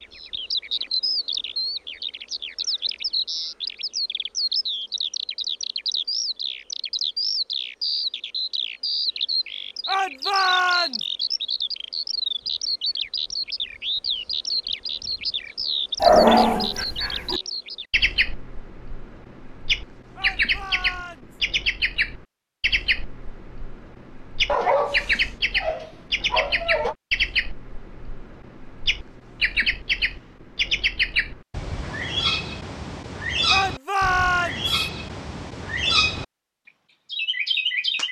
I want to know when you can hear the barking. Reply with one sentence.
You can hear the barking from 16.0 to 17.4 s and from 24.4 to 26.9 s.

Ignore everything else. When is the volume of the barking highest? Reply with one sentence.
The volume of the barking peaks at 16 seconds.